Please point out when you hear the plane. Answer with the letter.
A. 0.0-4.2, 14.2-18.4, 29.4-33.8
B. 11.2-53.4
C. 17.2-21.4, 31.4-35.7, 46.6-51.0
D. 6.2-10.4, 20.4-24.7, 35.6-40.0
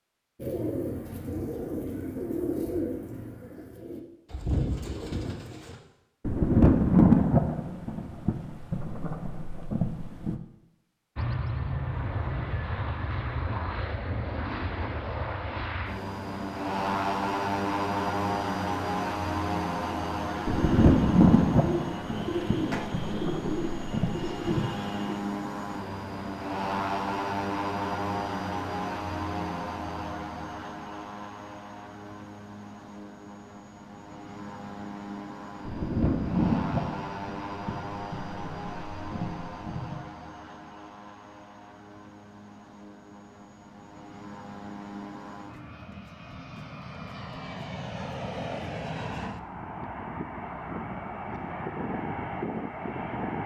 B.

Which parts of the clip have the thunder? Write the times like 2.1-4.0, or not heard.
6.2-10.4, 20.4-24.7, 35.6-40.0.